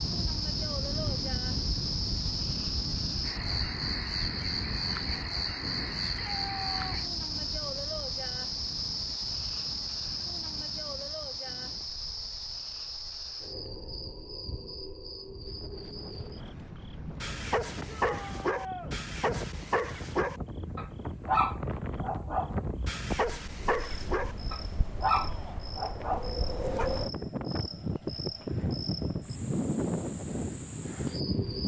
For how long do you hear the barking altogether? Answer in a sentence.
The barking can be heard for 10 seconds in total.